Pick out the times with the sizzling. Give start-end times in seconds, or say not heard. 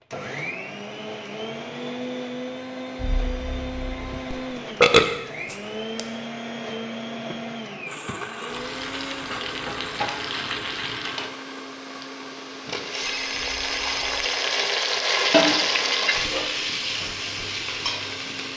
8.4-18.5.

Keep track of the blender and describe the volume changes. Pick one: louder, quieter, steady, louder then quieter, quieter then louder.
quieter.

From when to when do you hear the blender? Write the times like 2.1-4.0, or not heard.
0.0-18.5.